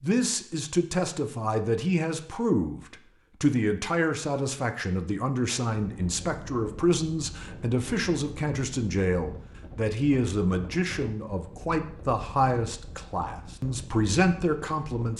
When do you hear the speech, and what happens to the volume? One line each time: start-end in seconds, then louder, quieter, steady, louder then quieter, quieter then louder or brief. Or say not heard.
0.0-15.1 steady.